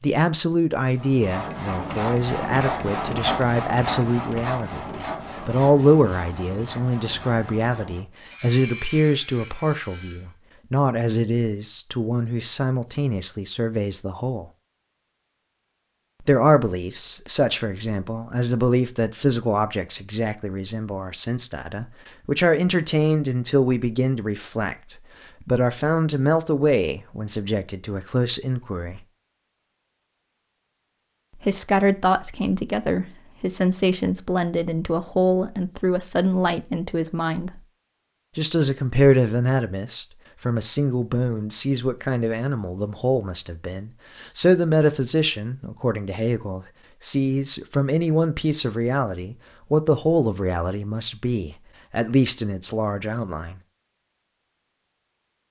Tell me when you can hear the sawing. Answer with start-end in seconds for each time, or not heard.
0.9-10.3.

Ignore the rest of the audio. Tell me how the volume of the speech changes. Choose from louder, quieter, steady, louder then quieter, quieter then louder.
steady.